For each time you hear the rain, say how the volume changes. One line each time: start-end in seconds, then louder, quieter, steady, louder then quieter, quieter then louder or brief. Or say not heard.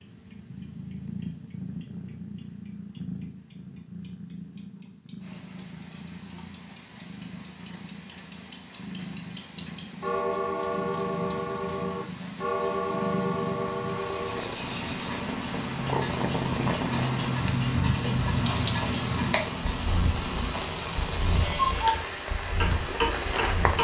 5.2-23.7 louder.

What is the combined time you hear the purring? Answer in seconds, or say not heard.
24 s.